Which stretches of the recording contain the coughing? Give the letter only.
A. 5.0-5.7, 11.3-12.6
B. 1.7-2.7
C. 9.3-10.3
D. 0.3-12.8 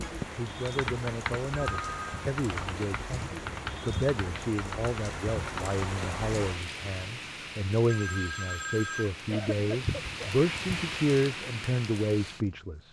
C.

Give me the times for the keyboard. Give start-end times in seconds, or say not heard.
0.0-5.8.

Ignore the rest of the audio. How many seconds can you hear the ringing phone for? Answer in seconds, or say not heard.
2 s.